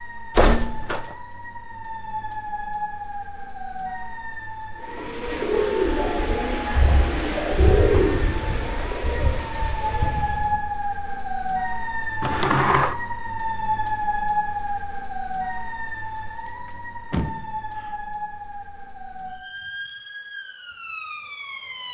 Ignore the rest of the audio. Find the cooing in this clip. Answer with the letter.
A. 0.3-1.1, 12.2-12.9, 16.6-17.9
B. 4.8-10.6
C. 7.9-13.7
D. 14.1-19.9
B.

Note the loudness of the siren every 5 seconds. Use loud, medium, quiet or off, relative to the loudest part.
medium, medium, loud, medium, medium.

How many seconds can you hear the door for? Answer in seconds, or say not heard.
3 s.